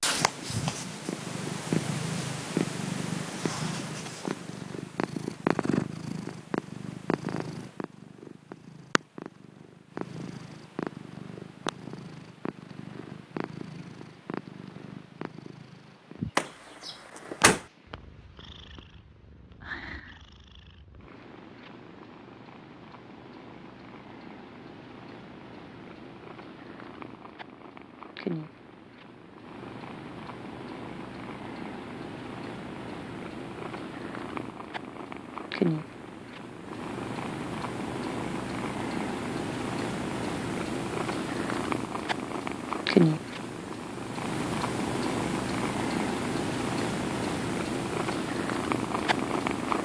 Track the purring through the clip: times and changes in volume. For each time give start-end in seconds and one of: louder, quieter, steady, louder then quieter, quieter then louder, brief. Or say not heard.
0.0-49.8 quieter then louder.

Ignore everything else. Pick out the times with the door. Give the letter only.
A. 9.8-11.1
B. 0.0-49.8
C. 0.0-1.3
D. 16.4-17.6
D.